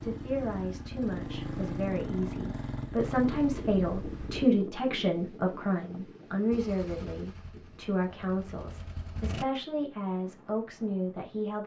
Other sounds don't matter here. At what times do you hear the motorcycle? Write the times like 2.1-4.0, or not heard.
0.0-4.5, 6.5-9.4.